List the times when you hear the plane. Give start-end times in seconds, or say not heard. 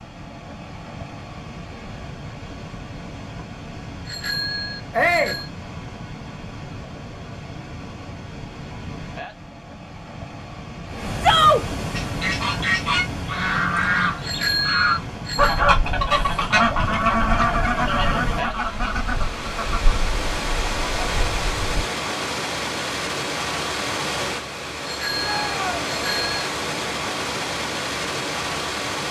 not heard.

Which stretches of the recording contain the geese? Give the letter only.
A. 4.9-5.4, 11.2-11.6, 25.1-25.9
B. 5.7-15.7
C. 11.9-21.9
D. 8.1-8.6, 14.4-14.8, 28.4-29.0
C.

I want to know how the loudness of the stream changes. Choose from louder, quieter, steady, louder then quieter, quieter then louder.
louder.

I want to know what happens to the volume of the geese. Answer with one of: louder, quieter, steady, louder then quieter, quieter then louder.
quieter.